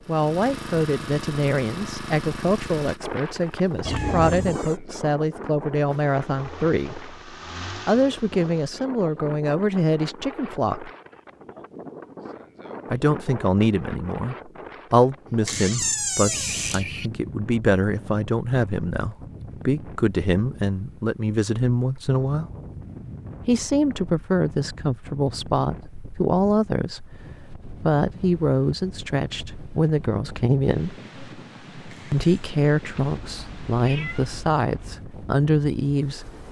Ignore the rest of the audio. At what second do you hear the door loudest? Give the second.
16 s.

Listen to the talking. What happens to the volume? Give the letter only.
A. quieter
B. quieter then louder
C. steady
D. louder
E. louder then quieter
C.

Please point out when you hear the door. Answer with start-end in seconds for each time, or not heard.
3.9-4.8, 15.4-16.8, 31.9-32.5.